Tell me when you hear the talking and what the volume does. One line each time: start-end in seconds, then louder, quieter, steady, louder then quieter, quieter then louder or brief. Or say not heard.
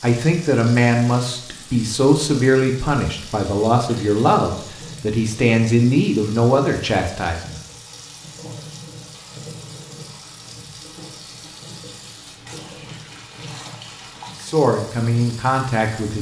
0.0-7.5 steady
14.4-16.1 brief.